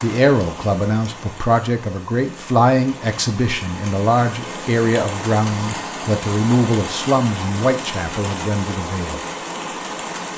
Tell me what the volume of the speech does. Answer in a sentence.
The loudness of the speech stays about the same.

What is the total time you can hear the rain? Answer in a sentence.
You can hear the rain for 10 seconds altogether.